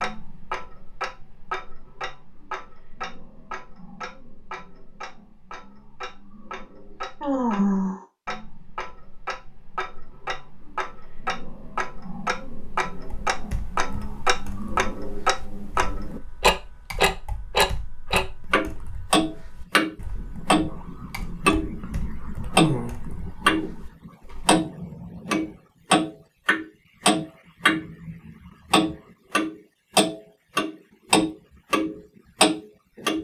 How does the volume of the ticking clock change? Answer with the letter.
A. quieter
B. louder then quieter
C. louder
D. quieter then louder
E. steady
C.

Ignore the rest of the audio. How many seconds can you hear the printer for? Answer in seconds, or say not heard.
not heard.